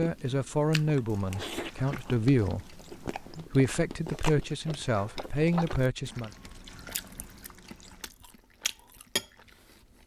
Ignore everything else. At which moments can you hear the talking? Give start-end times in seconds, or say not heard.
0.0-6.3.